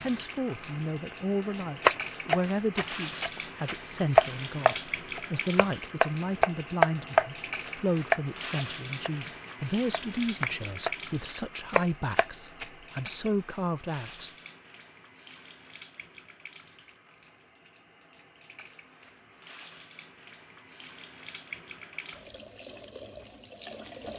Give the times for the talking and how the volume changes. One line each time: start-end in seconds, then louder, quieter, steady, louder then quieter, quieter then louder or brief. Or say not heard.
0.0-14.3 steady.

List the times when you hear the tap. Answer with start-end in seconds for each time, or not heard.
0.0-24.1.